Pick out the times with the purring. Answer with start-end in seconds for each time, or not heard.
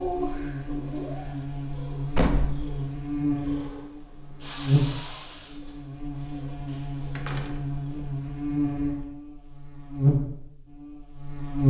0.0-8.1.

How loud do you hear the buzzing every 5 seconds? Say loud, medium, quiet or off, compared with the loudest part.
medium, medium, loud.